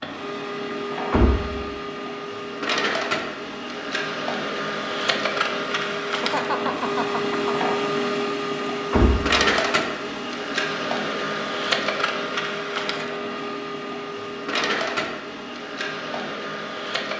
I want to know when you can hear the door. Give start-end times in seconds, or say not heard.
1.1-1.6, 8.9-9.3.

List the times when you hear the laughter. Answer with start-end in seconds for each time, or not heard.
6.2-7.5.